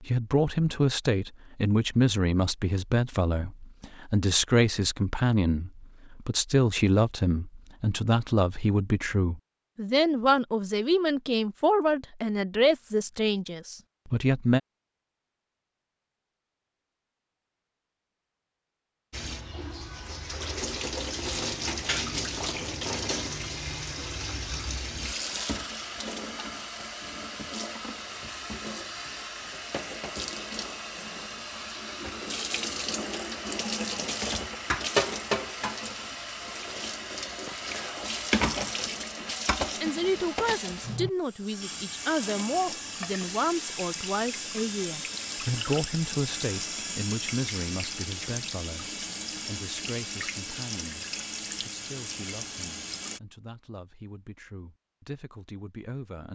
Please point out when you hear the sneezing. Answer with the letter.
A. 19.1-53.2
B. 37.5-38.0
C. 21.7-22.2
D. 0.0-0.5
C.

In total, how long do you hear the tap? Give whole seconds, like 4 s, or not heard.
34 s.